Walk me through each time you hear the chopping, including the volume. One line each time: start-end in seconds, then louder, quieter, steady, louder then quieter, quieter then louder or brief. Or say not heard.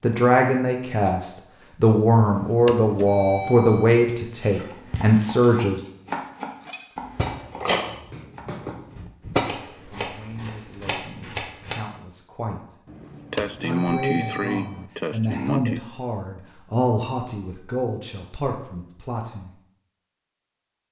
4.7-11.8 quieter then louder.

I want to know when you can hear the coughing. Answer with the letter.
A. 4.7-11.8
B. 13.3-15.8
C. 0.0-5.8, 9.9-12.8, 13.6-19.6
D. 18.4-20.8
B.